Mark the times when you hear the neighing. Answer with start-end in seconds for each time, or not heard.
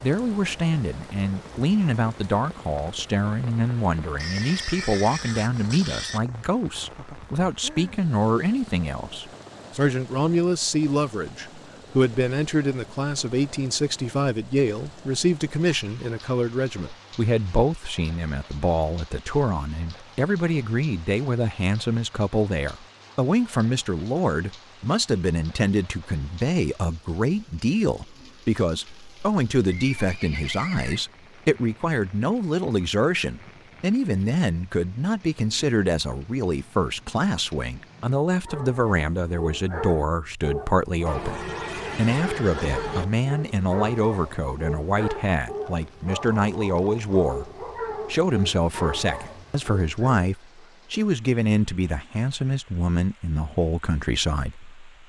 4.2-6.2, 28.9-31.0, 41.0-43.0.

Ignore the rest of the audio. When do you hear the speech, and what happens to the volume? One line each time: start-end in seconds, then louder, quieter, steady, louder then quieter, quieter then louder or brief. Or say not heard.
0.0-54.9 steady.